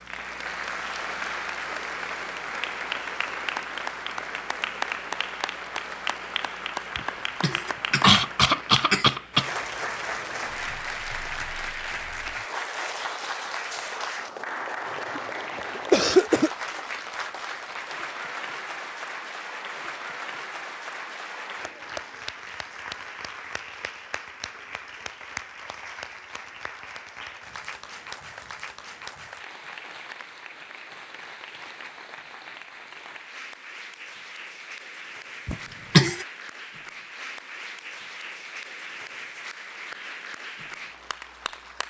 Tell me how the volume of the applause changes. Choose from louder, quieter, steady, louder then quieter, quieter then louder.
quieter.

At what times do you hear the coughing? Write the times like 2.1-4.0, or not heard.
7.0-9.4, 15.2-16.5, 35.5-36.2.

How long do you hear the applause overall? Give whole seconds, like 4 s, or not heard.
42 s.